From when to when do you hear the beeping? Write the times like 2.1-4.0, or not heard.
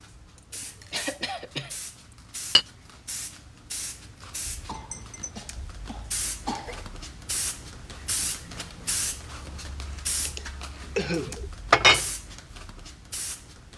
not heard.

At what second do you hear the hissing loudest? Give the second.
9 s.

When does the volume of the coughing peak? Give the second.
11 s.